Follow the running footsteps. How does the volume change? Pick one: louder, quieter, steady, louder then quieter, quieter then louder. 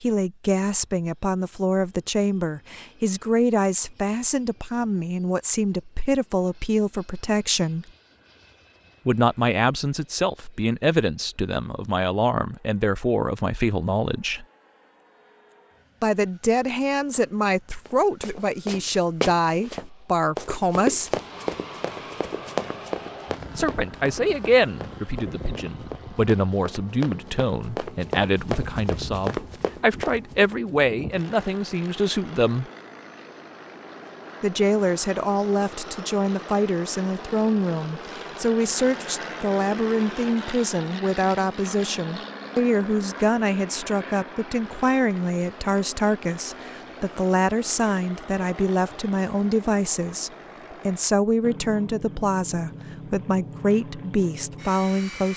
quieter then louder.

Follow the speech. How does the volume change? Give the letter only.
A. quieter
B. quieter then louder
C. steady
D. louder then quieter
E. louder
C.